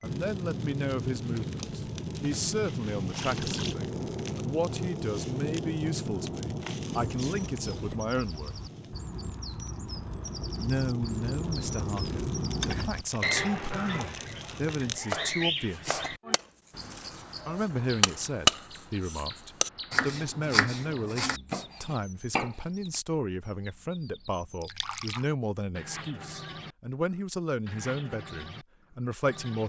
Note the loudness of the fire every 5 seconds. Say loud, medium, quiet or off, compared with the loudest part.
loud, loud, loud, off, off, off.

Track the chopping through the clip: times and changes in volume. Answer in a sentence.
You can hear the chopping briefly from 15.1 to 17.1 s; and from 18.0 to 22.9 s, getting quieter.